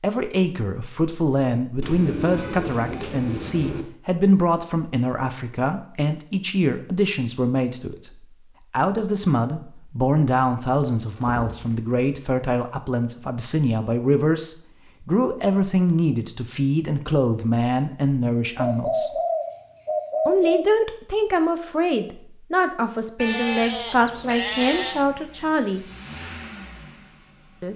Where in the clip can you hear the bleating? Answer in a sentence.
You can hear the bleating from 23.1 to 25.1 s.